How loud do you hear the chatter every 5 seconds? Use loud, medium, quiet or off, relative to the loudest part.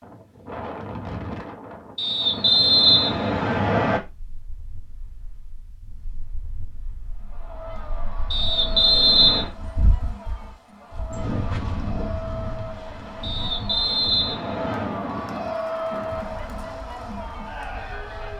off, medium, medium, loud.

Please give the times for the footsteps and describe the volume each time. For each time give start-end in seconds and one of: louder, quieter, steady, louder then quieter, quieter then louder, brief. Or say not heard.
not heard.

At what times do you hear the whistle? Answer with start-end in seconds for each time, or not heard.
1.9-4.0, 8.3-9.5, 13.2-15.0.